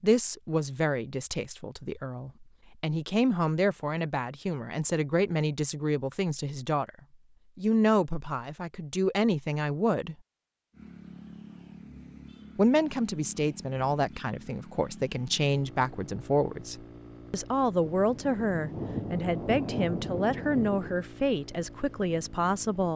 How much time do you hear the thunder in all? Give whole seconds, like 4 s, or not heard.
3 s.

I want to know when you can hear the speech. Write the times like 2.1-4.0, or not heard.
0.0-6.9, 7.5-10.2, 12.6-22.9.